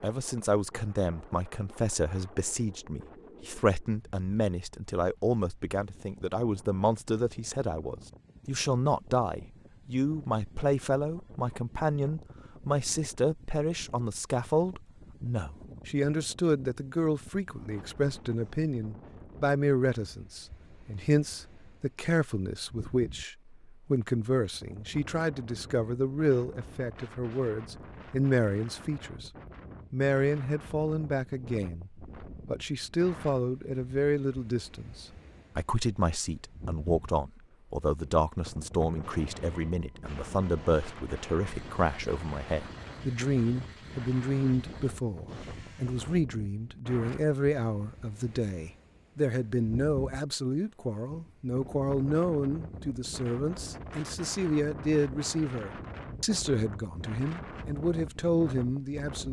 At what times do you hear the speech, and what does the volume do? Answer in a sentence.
You can hear the speech from 0.0 to 29.3 s, at a steady volume; and from 29.9 to 59.2 s, at a steady volume.